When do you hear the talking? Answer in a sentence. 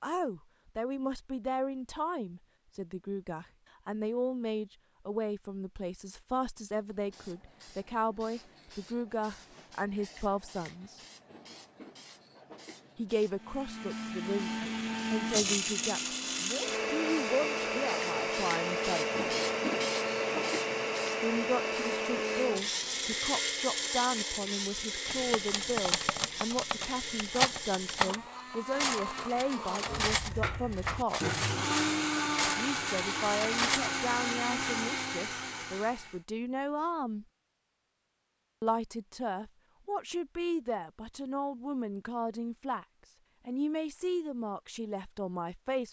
You can hear the talking from 0.0 to 11.0 s, from 12.9 to 19.2 s, from 21.2 to 31.4 s, from 32.5 to 37.2 s, from 38.6 to 42.9 s and from 43.5 to 45.8 s.